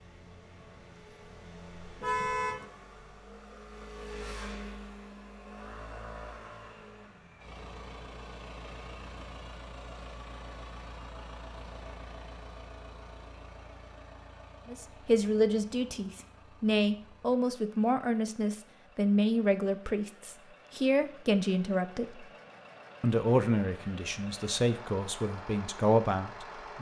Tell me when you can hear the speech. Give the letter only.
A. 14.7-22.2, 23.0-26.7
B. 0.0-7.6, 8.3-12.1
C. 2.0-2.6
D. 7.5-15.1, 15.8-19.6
A.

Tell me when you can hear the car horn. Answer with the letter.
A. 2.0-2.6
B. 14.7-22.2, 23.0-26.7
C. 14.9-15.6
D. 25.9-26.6
A.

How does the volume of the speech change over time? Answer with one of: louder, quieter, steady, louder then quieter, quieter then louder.
steady.